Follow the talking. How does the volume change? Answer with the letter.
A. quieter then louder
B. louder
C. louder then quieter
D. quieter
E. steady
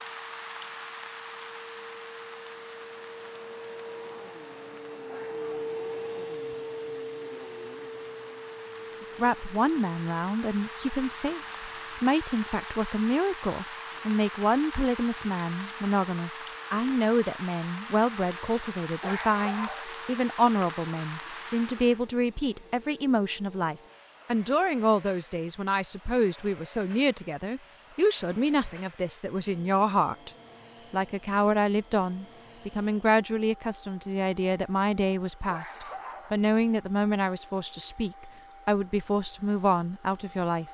E.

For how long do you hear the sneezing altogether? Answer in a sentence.
The sneezing can be heard for 2 seconds in total.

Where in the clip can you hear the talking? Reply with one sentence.
You can hear the talking from 9.0 to 30.3 s and from 30.9 to 40.6 s.